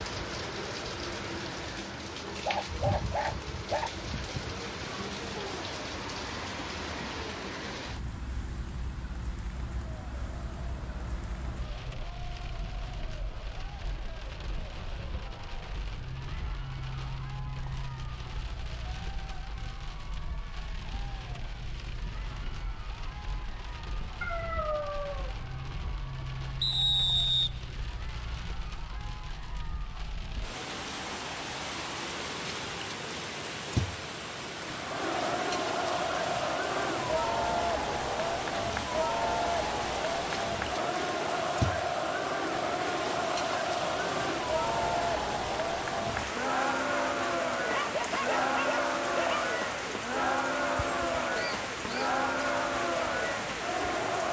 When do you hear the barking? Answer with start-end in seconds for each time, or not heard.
2.2-4.0, 24.2-25.3, 47.7-49.5.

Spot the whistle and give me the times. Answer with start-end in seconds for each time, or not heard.
26.6-27.5.